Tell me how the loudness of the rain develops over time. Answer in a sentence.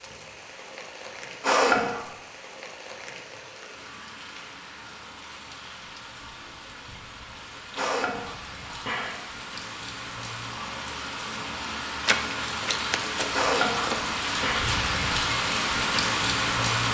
The volume of the rain goes up.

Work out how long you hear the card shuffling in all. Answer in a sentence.
The card shuffling can be heard for 2 seconds in total.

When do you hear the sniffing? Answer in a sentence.
You can hear the sniffing from 1.4 to 2.0 s, from 7.8 to 9.2 s and from 13.3 to 14.7 s.